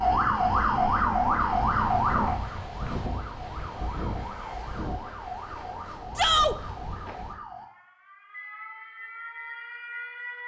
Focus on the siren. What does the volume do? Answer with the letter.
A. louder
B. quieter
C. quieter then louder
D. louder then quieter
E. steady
B.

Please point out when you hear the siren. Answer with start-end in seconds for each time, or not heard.
0.0-10.4.